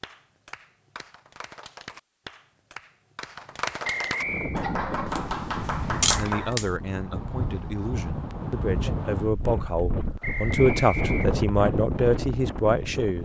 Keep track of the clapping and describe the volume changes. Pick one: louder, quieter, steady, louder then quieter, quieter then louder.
louder.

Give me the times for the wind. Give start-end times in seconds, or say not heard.
4.2-13.1.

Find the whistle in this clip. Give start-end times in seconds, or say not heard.
3.8-4.6, 10.2-11.3.